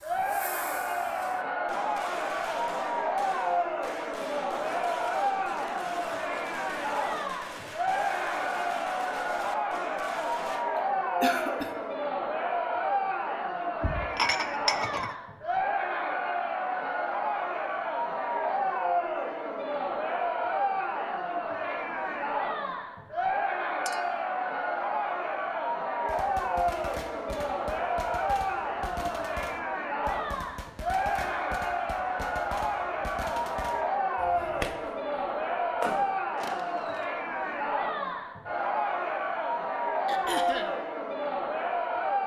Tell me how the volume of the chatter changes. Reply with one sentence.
The loudness of the chatter stays about the same.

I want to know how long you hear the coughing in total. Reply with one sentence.
You can hear the coughing for 2 seconds altogether.